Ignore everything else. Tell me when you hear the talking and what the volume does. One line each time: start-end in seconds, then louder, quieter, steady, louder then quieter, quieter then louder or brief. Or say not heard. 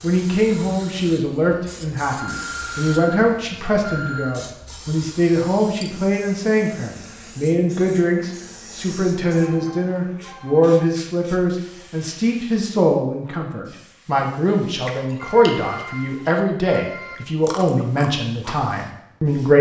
0.0-19.5 steady.